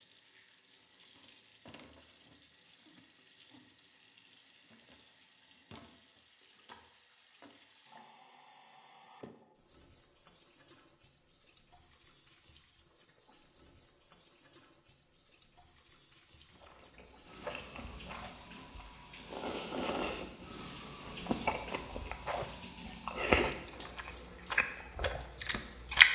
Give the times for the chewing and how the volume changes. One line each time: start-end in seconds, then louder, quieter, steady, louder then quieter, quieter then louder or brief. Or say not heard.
16.5-26.1 louder then quieter.